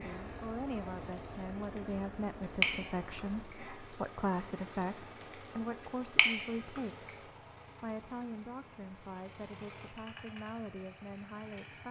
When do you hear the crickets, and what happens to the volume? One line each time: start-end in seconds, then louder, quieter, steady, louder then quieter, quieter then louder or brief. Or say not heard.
0.0-11.8 louder.